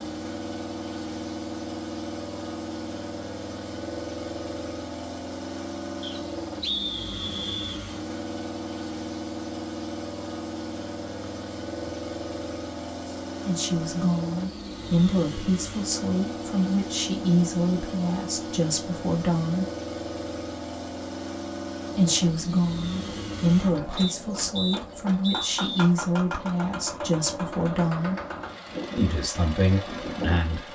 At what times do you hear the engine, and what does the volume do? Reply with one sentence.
You can hear the engine from 0.0 to 30.6 s, at a steady volume.